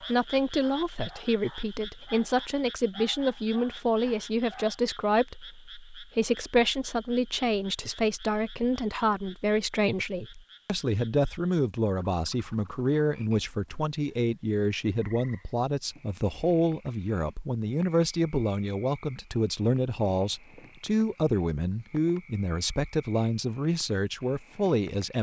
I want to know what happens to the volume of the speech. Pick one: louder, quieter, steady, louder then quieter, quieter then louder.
steady.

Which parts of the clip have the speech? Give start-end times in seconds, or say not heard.
0.0-25.1.